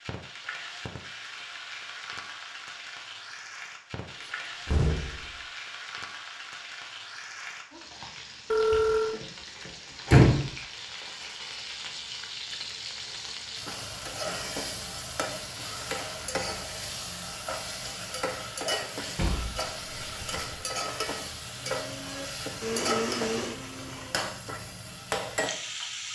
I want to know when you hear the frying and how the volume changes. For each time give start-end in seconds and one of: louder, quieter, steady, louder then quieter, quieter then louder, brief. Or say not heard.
0.0-26.1 louder.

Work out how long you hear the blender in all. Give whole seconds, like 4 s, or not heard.
3 s.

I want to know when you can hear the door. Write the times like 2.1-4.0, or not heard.
4.1-5.3, 8.7-9.2, 10.1-10.5, 19.1-20.6.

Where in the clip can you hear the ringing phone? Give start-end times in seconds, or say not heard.
8.5-9.2.